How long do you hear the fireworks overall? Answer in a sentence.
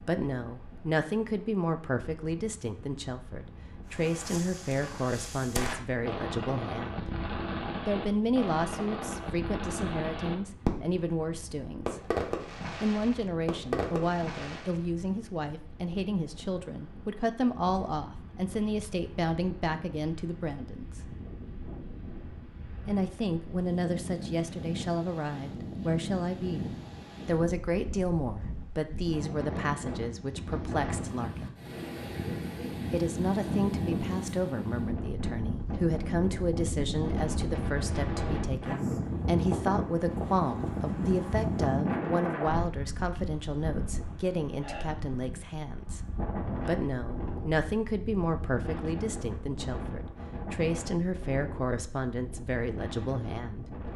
The fireworks can be heard for 10 seconds in total.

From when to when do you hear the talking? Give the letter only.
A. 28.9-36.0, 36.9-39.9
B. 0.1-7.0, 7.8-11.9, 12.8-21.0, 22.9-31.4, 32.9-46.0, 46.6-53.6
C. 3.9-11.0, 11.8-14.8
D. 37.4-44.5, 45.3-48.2
B.